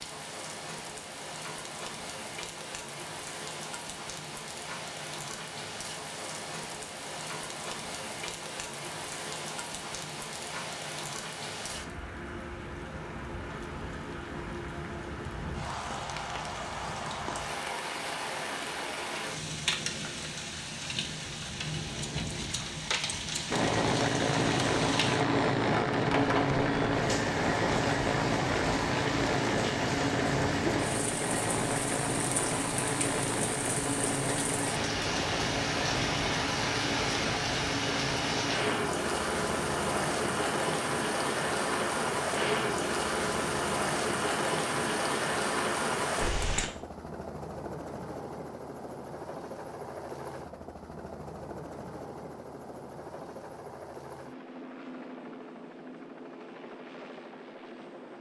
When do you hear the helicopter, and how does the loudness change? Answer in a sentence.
The helicopter can be heard from 23.5 to 58.1 s, getting quieter.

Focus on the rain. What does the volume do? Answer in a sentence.
The loudness of the rain goes up.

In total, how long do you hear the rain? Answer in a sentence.
You can hear the rain for 47 seconds altogether.